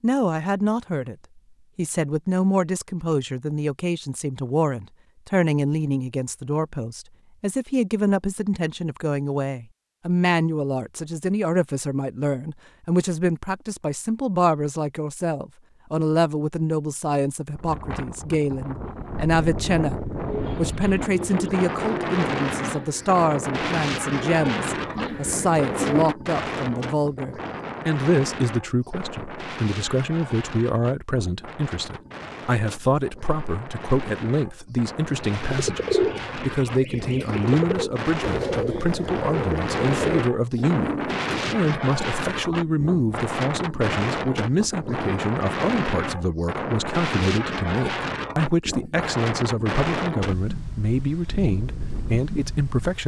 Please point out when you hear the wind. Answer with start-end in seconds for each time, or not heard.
17.6-53.0.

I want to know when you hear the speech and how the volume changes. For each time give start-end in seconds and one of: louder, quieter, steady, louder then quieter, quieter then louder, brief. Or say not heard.
0.0-1.1 brief
1.8-53.0 steady.